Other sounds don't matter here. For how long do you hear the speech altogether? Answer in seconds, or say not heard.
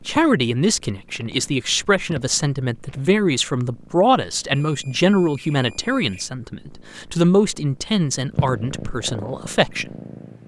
10 s.